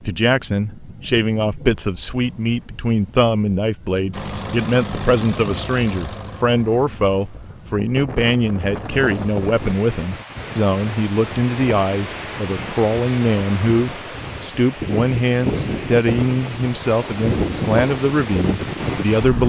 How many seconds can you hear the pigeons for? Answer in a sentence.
You can't hear the pigeons here.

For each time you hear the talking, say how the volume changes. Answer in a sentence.
The talking can be heard from 0.0 to 19.4 s, at a steady volume.